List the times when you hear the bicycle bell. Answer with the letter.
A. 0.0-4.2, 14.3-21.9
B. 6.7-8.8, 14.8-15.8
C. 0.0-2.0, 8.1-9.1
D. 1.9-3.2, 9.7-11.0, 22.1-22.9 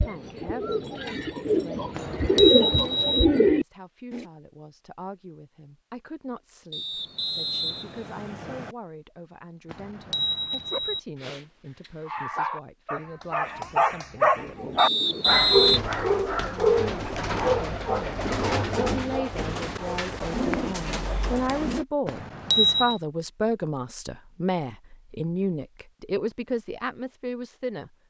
D.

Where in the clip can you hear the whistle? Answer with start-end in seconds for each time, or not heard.
6.7-8.8, 14.8-15.8.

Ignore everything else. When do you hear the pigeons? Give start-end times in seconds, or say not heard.
0.0-4.2, 14.3-21.9.